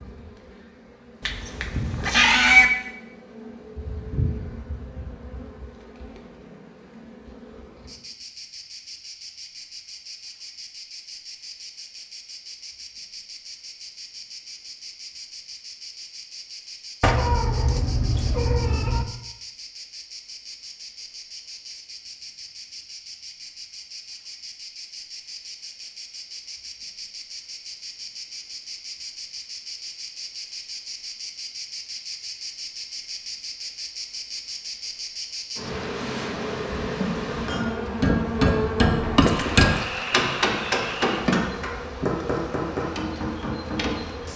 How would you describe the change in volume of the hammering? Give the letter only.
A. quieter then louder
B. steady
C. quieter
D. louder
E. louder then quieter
C.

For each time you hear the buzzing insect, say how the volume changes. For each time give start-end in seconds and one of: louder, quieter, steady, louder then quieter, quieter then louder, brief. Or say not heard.
0.0-44.3 louder.